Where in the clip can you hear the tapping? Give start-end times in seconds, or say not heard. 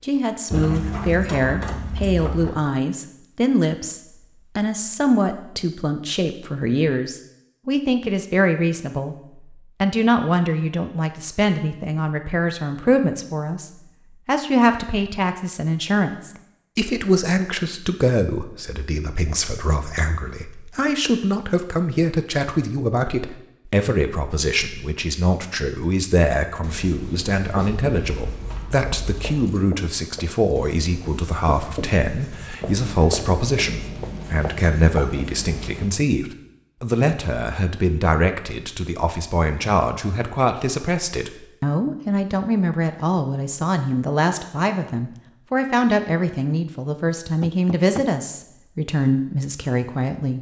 47.4-48.0.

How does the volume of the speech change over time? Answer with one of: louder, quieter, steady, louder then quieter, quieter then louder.
steady.